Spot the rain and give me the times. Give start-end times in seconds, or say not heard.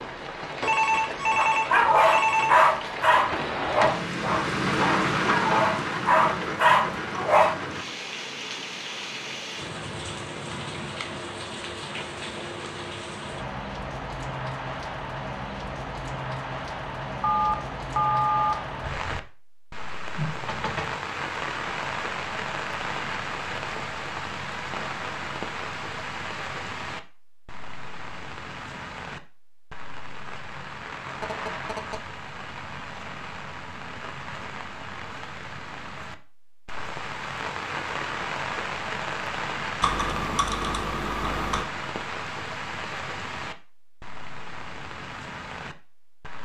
0.0-46.4.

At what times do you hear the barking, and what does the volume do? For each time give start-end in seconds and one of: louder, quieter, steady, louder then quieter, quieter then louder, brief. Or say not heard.
1.4-7.5 quieter then louder.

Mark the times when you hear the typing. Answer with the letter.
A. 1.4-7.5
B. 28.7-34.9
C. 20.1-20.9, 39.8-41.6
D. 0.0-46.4
C.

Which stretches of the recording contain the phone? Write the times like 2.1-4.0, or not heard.
0.6-2.5, 17.2-18.6, 31.1-32.0.